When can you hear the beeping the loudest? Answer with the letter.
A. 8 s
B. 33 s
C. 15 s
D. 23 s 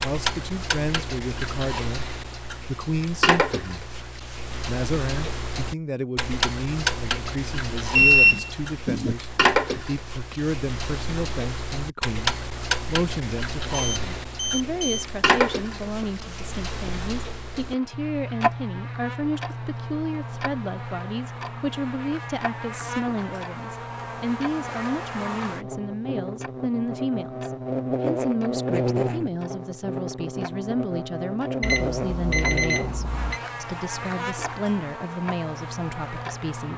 A.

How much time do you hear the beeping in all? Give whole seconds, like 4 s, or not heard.
4 s.